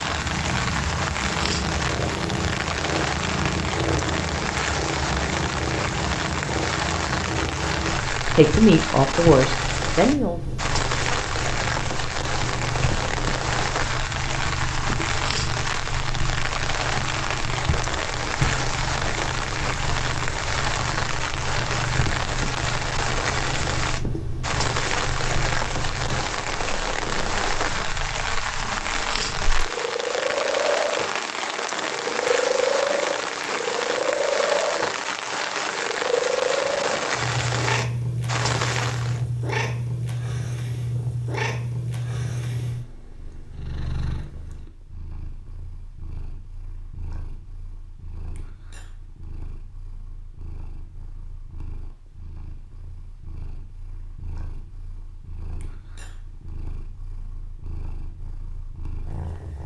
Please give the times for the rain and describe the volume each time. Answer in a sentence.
You can hear the rain from 0.0 to 39.2 s, at a steady volume.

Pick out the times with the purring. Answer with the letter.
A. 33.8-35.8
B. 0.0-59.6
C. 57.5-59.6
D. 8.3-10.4
B.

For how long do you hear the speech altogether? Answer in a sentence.
You can hear the speech for 2 seconds altogether.